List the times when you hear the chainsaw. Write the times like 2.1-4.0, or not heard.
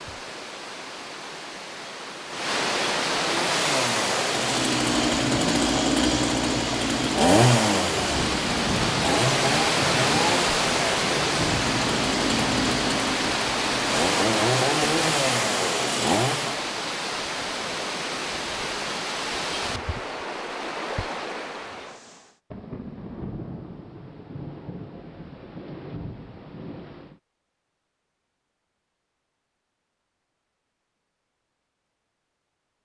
3.1-16.6.